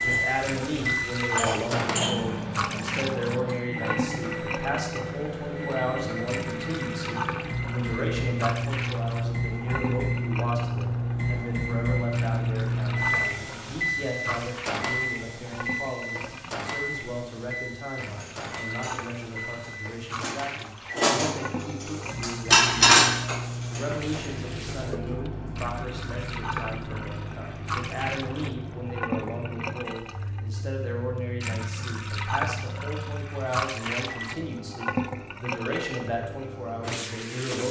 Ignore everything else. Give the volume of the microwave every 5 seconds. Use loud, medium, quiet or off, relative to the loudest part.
loud, loud, loud, medium, medium, medium, quiet, quiet.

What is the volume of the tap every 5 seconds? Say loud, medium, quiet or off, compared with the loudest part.
loud, loud, medium, medium, medium, loud, loud, loud.